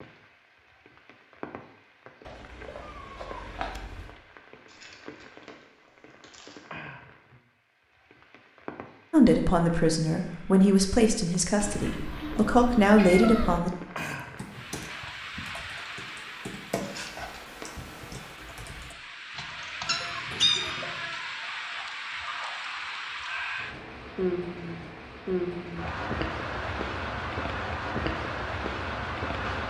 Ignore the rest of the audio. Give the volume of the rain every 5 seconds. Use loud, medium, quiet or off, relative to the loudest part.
quiet, quiet, medium, medium, loud, loud.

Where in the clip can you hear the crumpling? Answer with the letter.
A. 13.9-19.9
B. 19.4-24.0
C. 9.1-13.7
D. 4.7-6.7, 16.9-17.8
D.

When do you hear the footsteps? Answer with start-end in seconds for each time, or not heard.
not heard.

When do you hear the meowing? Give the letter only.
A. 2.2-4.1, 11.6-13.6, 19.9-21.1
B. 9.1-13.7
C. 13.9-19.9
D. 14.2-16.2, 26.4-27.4
A.